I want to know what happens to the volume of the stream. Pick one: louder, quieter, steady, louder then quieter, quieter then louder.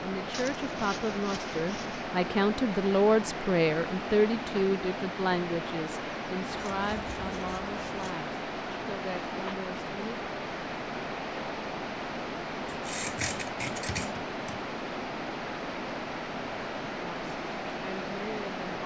steady.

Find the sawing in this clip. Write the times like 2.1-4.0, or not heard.
0.3-2.0, 6.5-8.2, 12.7-14.6.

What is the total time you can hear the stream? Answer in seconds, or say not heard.
19 s.